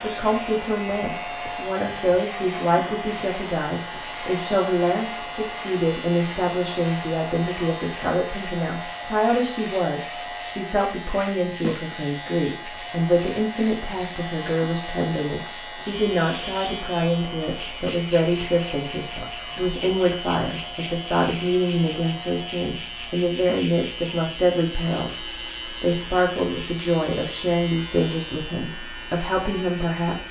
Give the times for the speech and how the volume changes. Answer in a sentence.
You can hear the speech from 0.0 to 30.2 s, at a steady volume.